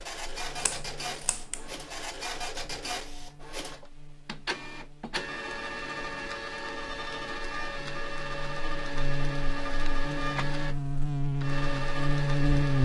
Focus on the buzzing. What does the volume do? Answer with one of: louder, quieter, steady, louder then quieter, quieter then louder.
louder.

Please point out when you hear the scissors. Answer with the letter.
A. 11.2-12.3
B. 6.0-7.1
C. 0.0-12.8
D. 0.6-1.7
D.